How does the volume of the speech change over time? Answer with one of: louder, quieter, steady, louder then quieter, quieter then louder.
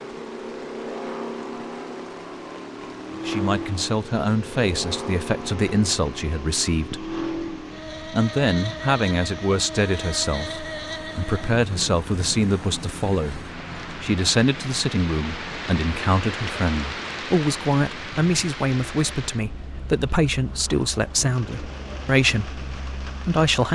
steady.